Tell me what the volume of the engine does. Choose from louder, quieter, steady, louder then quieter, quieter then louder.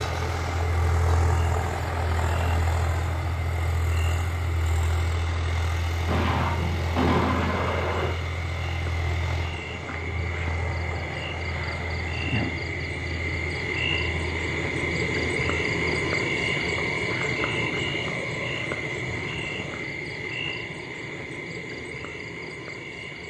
quieter.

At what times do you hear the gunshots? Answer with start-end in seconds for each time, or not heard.
6.0-8.1.